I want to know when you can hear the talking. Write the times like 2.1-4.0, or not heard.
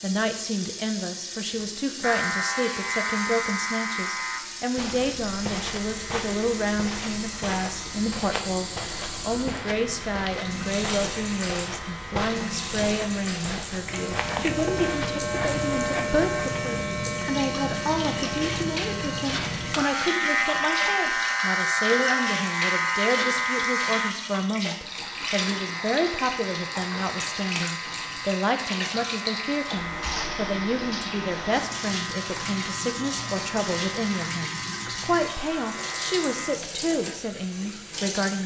0.0-38.4.